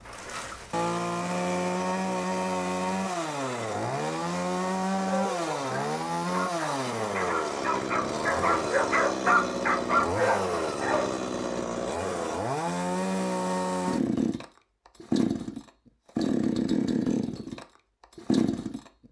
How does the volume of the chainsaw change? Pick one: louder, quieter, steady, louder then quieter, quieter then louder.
steady.